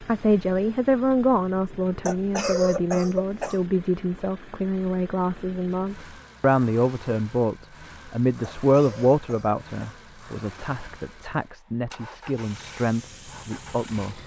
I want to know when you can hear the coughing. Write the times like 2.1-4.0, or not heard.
2.0-3.6, 8.4-10.1.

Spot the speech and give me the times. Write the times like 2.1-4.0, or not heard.
0.0-14.2.